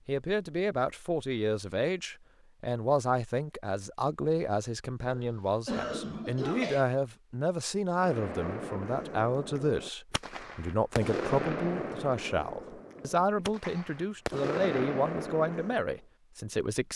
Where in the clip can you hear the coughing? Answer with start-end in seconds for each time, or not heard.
5.0-6.8, 12.9-13.9.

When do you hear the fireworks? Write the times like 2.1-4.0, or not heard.
8.0-15.9.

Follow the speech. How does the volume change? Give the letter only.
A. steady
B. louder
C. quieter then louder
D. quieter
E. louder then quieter
A.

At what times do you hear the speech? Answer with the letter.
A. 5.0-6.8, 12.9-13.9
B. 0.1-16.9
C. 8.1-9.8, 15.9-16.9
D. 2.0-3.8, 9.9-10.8
B.